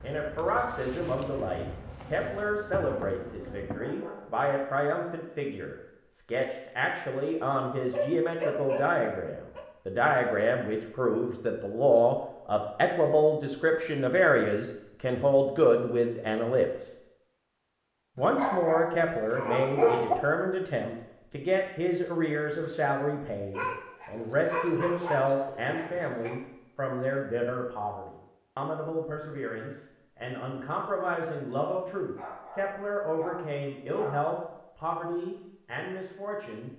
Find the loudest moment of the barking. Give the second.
20 s.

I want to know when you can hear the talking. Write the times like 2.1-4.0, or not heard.
0.0-16.9, 18.1-36.7.